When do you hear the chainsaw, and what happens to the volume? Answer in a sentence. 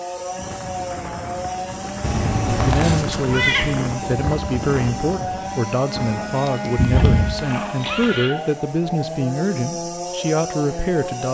You can hear the chainsaw from 0.0 to 11.2 s, at a steady volume.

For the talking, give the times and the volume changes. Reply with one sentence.
The talking can be heard from 2.5 to 11.2 s, at a steady volume.